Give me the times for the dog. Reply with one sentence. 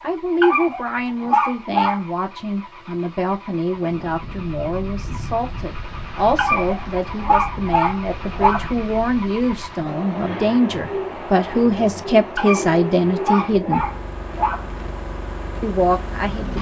You can hear the dog from 0.4 to 2.0 s, from 6.3 to 8.7 s and from 12.3 to 14.7 s.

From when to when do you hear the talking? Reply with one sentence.
You can hear the talking from 0.0 to 13.8 s and from 15.6 to 16.5 s.